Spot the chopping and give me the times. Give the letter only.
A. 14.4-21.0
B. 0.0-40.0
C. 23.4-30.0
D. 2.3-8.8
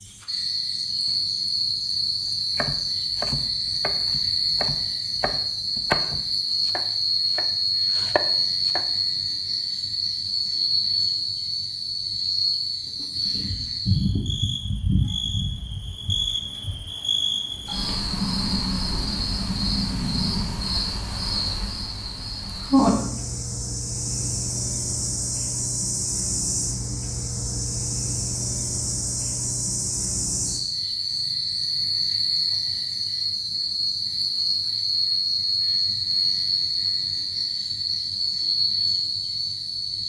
D.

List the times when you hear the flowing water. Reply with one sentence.
The flowing water can't be heard in this clip.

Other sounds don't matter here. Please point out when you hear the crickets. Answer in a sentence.
The crickets can be heard from 0.0 to 40.0 s.